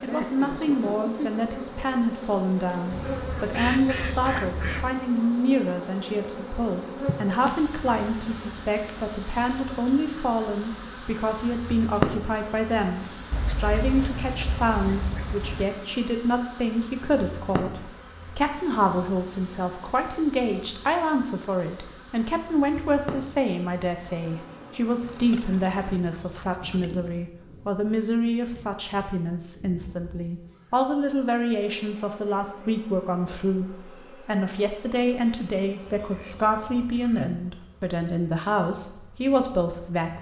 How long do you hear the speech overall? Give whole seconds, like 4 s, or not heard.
40 s.